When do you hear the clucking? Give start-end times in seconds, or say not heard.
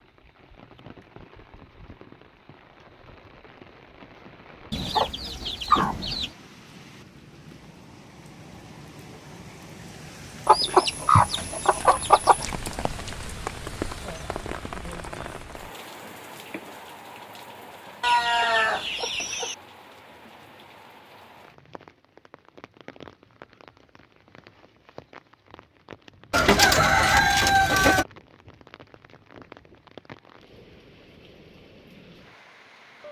4.7-6.3, 10.4-12.4, 18.0-19.6, 26.3-28.1.